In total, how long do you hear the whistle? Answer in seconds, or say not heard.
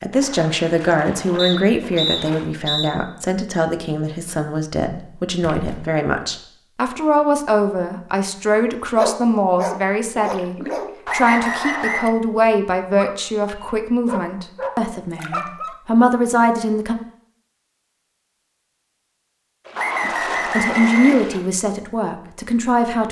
4 s.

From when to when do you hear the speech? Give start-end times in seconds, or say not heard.
0.0-16.9, 20.0-23.0.